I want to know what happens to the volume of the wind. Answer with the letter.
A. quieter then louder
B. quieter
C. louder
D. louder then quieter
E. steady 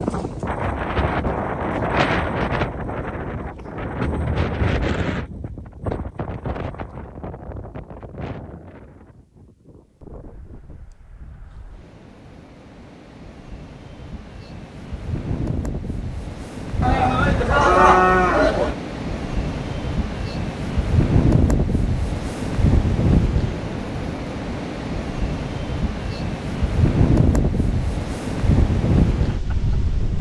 A.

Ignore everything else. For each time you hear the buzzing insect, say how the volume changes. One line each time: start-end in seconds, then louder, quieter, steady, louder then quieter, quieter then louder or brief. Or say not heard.
not heard.